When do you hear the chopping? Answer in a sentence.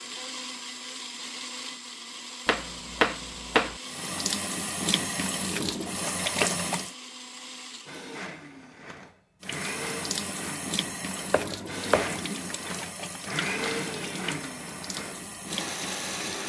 The chopping can be heard from 2.5 to 3.8 s and from 11.3 to 12.2 s.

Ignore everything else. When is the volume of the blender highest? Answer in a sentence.
The volume of the blender peaks at 14 seconds.